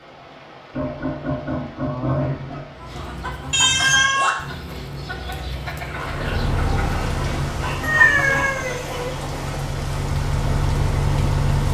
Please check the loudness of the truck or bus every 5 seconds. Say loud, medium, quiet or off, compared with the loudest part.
off, medium, loud.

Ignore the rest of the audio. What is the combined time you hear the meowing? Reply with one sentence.
The meowing can be heard for 2 seconds in total.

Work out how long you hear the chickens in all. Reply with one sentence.
You can hear the chickens for 7 seconds altogether.